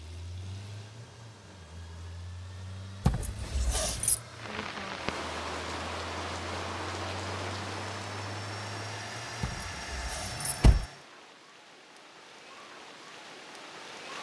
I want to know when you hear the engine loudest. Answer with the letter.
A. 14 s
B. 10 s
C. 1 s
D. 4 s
B.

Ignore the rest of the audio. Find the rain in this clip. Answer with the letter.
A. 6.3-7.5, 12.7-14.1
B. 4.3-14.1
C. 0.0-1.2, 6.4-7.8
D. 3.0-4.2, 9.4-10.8
B.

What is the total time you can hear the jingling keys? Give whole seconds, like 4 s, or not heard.
3 s.